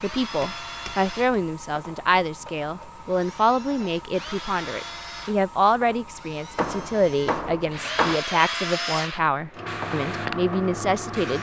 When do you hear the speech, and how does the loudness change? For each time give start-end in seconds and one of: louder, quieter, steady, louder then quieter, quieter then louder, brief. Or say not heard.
0.0-11.3 steady.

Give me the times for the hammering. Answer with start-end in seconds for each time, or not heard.
0.4-1.4, 6.5-8.2.